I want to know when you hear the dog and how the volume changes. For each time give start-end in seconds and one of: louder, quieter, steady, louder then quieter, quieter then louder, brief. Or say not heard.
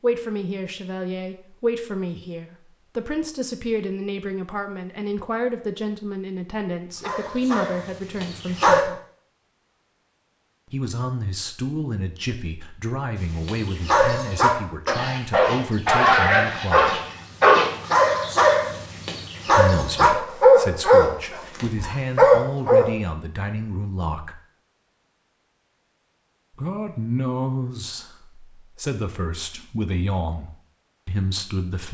7.0-8.8 brief
13.2-22.9 louder.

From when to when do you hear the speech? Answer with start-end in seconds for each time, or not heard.
0.0-9.0, 10.7-17.0, 19.4-24.4, 26.6-31.8.